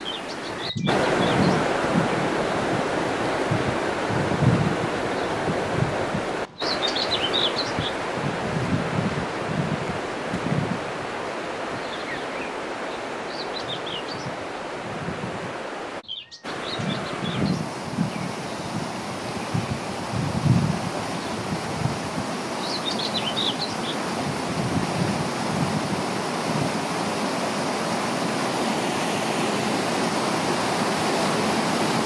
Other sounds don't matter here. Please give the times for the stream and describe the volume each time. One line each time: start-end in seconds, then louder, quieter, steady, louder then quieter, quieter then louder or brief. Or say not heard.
0.0-32.0 quieter then louder.